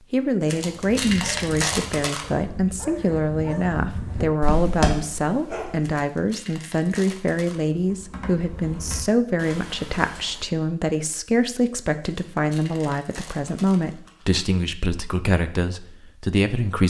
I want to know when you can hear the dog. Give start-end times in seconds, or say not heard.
1.0-6.0.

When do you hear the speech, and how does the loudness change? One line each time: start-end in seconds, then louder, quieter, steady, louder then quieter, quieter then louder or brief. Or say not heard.
0.1-16.8 steady.